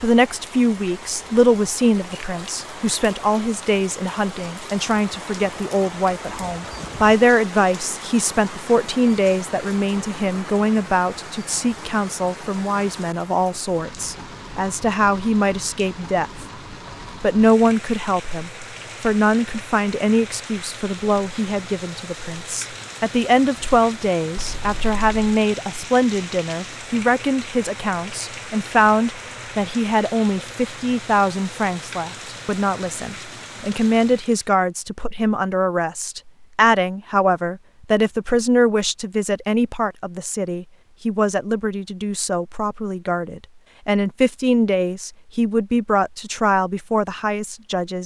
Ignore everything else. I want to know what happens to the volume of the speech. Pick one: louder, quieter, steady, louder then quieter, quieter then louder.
steady.